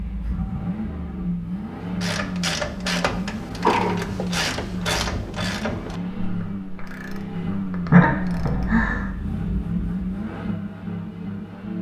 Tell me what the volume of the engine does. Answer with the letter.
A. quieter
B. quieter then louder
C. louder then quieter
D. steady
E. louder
D.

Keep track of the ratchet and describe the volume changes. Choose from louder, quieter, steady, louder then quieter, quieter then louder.
quieter.